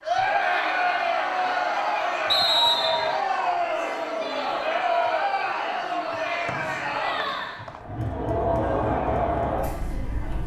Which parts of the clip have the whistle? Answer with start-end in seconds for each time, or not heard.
2.2-3.1, 6.5-7.8.